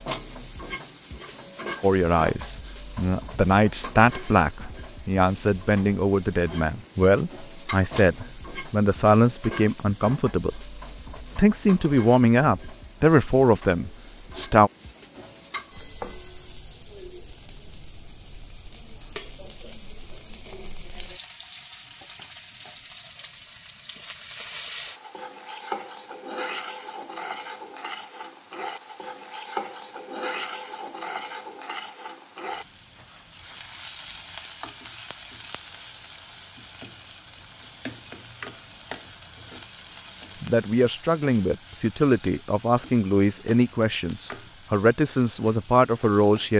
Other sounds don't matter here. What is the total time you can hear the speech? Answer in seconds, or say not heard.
19 s.